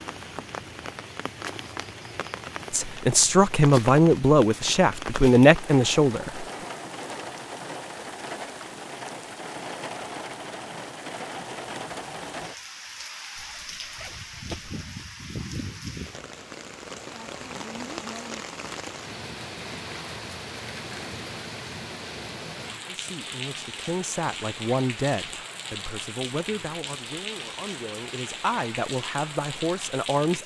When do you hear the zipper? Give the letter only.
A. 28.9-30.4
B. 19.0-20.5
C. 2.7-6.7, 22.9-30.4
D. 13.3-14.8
D.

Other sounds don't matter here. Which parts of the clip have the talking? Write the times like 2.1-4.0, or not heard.
2.7-6.7, 22.9-30.4.